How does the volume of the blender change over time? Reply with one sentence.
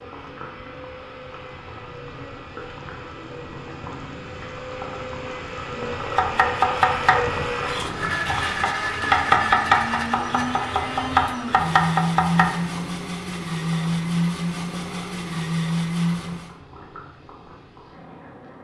The volume of the blender goes up.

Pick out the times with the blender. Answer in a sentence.
The blender can be heard from 0.0 to 16.6 s.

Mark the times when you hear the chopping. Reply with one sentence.
The chopping can be heard from 6.2 to 12.5 s.